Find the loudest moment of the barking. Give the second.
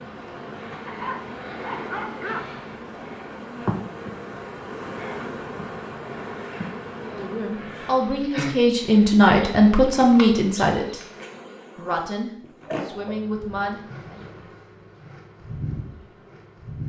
2 s.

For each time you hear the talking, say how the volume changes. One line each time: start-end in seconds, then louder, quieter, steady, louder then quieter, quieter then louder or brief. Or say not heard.
7.0-11.0 louder
11.8-14.2 brief.